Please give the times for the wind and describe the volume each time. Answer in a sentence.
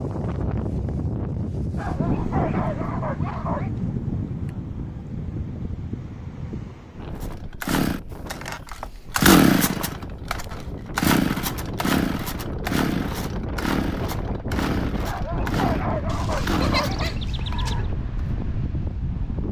You can hear the wind from 0.0 to 19.4 s, getting quieter then louder.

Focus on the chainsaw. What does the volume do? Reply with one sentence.
The volume of the chainsaw goes down.